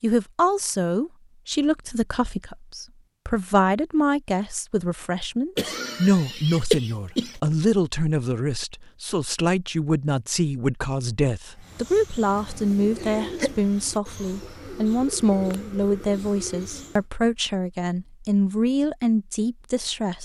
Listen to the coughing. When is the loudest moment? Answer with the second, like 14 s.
7 s.